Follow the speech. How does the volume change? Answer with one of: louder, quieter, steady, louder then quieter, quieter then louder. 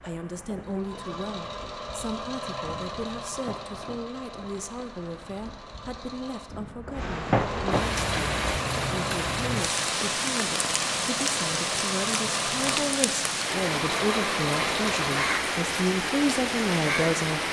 louder.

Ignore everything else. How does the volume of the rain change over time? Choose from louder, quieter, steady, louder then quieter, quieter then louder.
louder.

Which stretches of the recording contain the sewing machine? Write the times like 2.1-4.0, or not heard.
0.0-15.3.